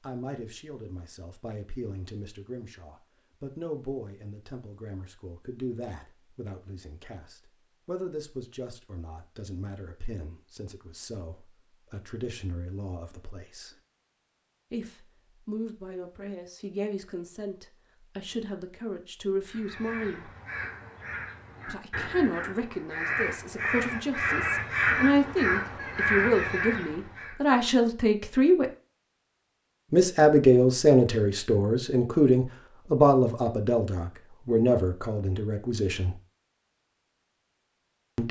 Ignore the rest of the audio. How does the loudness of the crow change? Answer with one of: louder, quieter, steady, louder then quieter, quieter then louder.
louder.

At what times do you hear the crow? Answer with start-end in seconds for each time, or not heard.
19.4-27.4.